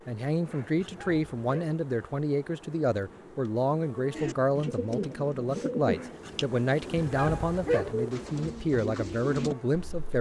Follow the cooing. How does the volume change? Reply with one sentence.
The loudness of the cooing goes down, then up.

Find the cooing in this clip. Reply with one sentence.
You can hear the cooing from 4.1 to 10.1 s.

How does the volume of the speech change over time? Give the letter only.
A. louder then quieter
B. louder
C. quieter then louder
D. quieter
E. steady
E.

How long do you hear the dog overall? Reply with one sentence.
You can hear the dog for 2 seconds altogether.